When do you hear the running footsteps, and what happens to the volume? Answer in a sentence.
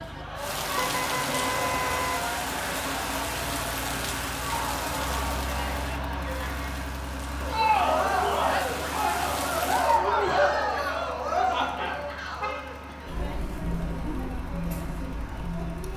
The running footsteps can't be heard in this clip.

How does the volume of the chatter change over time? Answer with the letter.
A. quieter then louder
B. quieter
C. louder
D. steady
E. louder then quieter
E.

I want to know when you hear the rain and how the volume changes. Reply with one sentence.
You can hear the rain from 0.0 to 10.0 s, getting quieter then louder.